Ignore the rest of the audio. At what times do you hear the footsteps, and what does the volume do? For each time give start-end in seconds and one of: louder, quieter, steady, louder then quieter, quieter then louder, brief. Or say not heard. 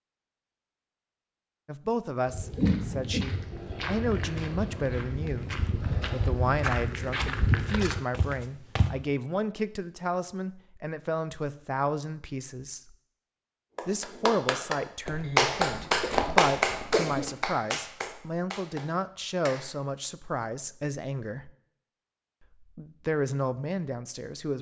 2.2-8.9 louder
15.1-17.3 brief.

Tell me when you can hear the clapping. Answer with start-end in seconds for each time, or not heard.
13.8-19.7.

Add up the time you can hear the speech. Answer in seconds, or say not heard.
21 s.